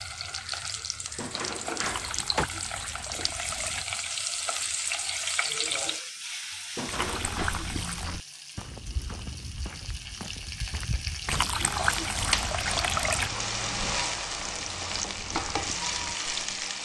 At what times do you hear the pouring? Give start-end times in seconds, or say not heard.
1.8-3.9, 6.8-8.2, 11.2-13.3.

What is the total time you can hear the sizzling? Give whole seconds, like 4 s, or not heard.
17 s.